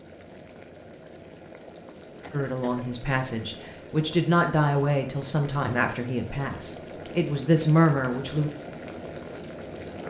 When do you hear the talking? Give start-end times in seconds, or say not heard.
2.3-8.5.